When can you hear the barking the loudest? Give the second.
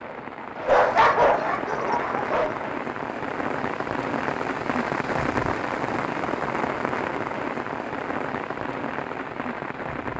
1 s.